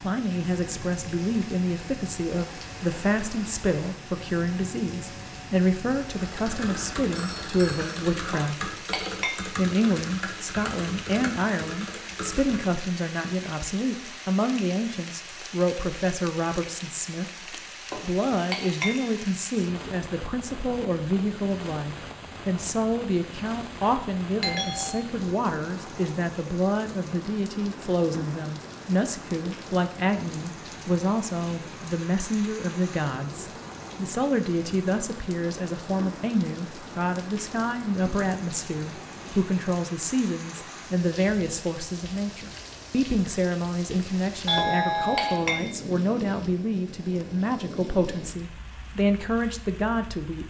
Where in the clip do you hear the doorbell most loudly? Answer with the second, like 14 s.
45 s.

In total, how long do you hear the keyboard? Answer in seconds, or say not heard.
7 s.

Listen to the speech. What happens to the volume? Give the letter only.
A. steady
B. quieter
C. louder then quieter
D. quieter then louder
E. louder
A.